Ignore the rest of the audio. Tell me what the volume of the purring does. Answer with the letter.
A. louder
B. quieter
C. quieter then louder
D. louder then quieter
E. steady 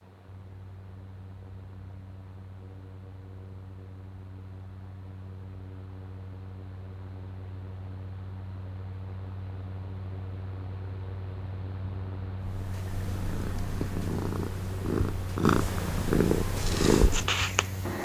A.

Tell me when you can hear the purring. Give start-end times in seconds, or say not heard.
12.4-17.9.